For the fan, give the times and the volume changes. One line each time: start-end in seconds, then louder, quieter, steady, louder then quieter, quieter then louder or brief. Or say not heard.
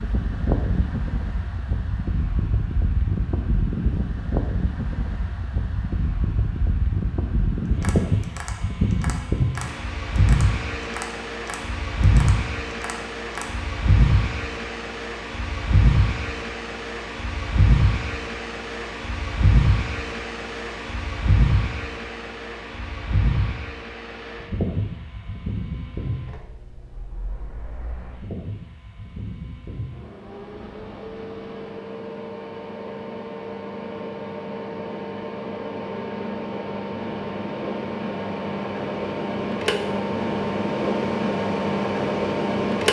0.0-42.8 quieter then louder.